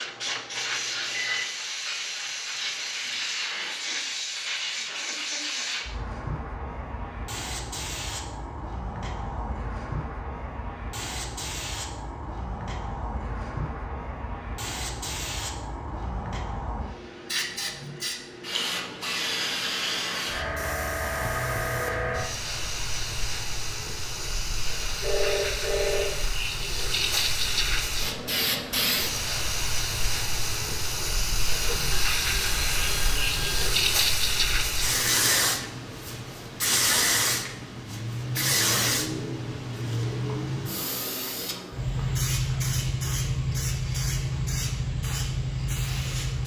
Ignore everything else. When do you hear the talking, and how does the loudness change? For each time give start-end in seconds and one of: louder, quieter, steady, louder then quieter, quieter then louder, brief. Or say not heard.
not heard.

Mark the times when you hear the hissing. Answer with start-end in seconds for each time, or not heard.
0.0-46.4.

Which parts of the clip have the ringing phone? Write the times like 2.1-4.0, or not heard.
0.1-1.4, 25.0-26.2, 31.6-33.7.